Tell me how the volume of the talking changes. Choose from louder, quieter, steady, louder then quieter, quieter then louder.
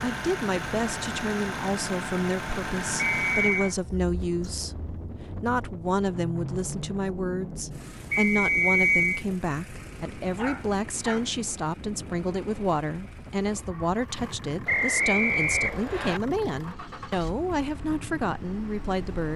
steady.